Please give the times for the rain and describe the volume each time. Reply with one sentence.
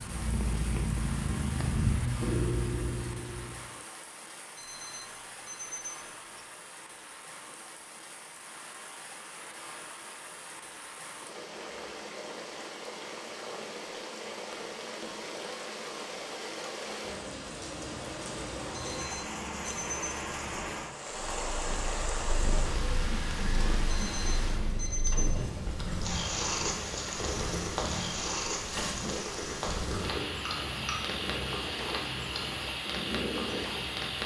The rain can be heard from 0.0 to 34.2 s, getting louder.